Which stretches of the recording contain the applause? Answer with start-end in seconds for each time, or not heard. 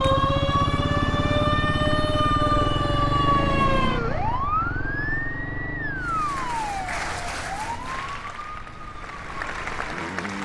6.0-10.4.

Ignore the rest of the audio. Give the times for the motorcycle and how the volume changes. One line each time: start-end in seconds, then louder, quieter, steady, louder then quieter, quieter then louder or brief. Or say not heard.
0.0-10.4 quieter.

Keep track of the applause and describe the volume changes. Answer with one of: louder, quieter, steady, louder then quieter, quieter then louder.
quieter then louder.